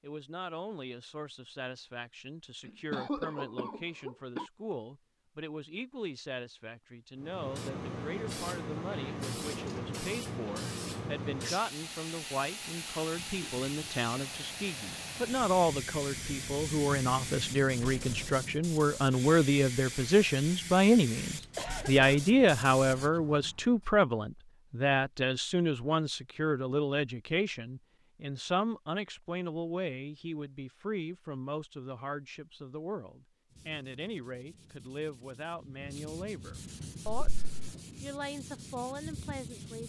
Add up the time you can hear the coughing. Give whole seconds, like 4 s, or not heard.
3 s.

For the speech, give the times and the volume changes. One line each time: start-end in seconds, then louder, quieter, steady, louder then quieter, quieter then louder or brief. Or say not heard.
0.0-39.8 louder then quieter.